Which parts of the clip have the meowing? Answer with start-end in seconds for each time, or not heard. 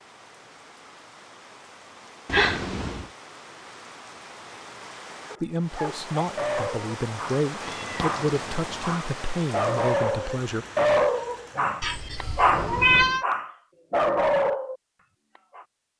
2.2-3.0, 7.6-8.9, 11.8-13.2.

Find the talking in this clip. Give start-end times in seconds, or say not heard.
5.4-10.7.